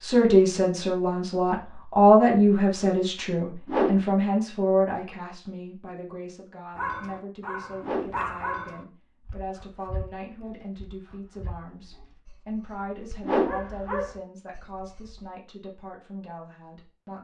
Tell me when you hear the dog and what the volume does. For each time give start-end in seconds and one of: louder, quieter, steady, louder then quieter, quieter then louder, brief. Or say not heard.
6.8-15.3 quieter then louder.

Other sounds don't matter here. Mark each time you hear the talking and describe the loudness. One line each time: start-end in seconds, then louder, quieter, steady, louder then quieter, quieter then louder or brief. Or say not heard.
0.0-17.1 quieter.